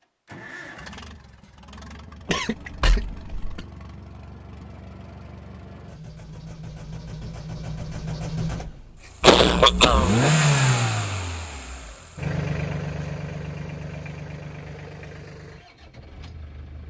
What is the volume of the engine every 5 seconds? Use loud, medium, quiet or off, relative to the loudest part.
quiet, medium, loud, quiet.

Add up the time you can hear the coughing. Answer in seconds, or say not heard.
2 s.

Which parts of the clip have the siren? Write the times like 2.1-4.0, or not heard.
not heard.